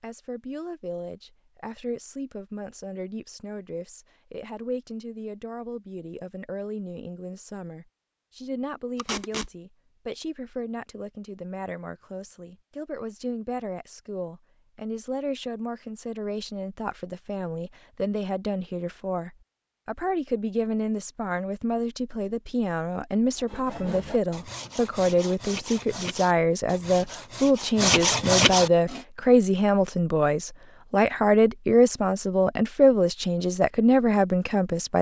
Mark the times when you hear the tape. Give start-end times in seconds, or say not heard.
8.9-9.5.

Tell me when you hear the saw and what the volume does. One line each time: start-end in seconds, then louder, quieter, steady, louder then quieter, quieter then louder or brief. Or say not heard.
23.4-29.1 louder.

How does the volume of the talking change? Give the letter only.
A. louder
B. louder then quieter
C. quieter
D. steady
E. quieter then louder
A.